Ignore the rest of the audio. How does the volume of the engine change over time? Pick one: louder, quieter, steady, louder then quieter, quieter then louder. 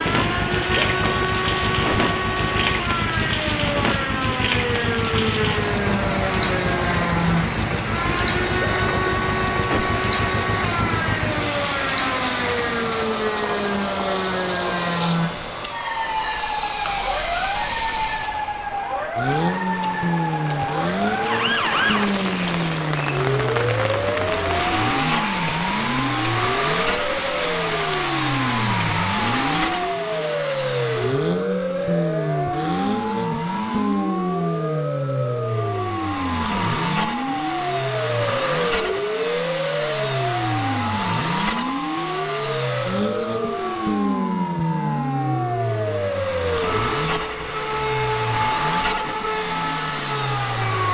steady.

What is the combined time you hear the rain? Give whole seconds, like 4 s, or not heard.
30 s.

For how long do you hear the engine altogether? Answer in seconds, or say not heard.
51 s.